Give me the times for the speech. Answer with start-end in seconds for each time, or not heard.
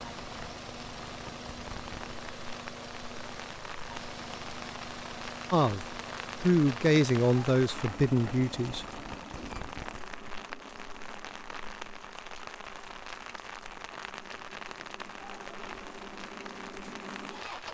5.5-8.8.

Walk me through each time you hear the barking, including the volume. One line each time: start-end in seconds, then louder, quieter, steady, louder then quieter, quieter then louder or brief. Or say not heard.
not heard.